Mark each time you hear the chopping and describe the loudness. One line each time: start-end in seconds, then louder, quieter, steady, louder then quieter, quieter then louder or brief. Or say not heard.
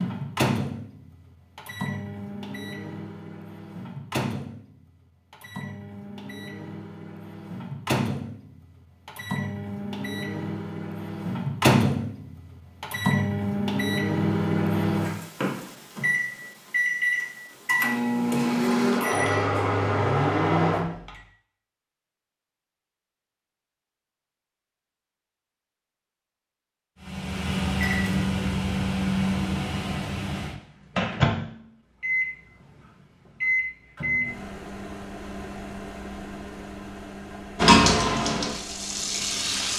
not heard.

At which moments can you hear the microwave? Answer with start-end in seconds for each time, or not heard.
0.0-21.1, 27.1-39.7.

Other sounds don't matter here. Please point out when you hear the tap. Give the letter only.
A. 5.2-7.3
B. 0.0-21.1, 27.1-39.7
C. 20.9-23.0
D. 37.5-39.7
D.